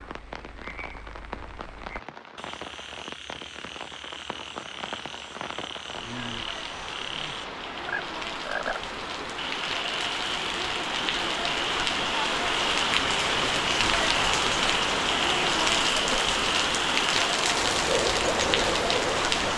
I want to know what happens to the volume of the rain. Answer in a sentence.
The loudness of the rain goes up.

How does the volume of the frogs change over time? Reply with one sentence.
The volume of the frogs goes up.